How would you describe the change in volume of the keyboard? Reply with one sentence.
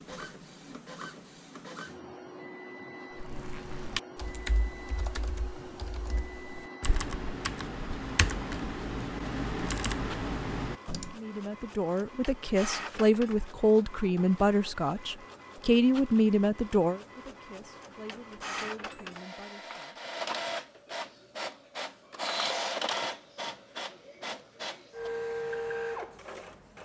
The volume of the keyboard goes down, then up.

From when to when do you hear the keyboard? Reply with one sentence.
You can hear the keyboard from 3.1 to 11.2 s.